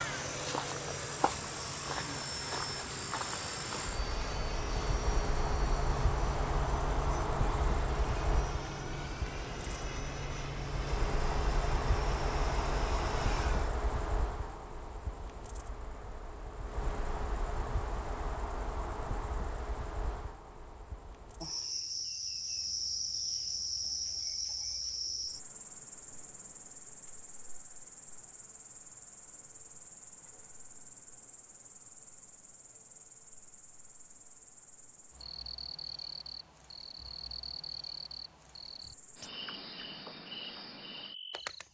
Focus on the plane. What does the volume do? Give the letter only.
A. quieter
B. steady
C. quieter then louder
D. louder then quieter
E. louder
B.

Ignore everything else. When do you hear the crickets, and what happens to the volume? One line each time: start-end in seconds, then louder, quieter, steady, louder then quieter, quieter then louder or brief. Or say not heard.
0.0-41.6 quieter.